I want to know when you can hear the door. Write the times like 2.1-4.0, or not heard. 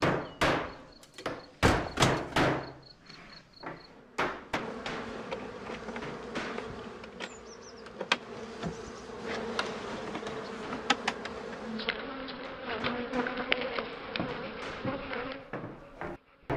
1.1-2.4.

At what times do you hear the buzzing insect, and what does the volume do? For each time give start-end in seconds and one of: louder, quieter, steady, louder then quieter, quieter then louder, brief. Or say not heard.
0.1-16.5 louder.